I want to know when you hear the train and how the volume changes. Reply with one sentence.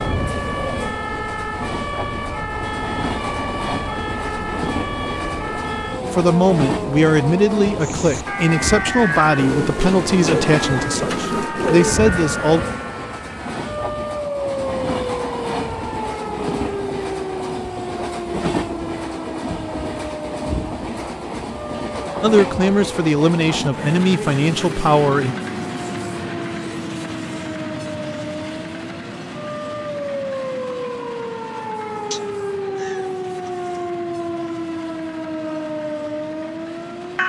You can hear the train from 0.0 to 37.2 s, getting quieter.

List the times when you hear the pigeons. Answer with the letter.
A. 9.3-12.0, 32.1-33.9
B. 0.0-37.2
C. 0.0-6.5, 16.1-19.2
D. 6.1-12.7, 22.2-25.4
A.